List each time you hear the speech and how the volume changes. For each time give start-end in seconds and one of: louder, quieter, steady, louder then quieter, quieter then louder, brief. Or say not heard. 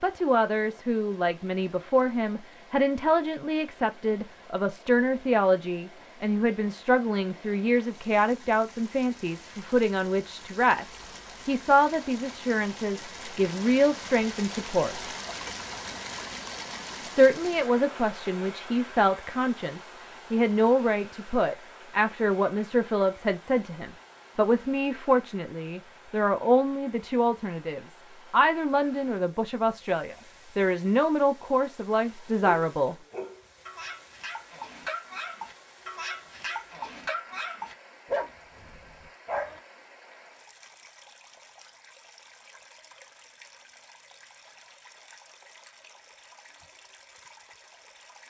0.0-15.1 steady
17.0-33.0 steady.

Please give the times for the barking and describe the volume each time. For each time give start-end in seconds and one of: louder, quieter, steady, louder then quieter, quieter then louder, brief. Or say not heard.
32.4-39.6 louder.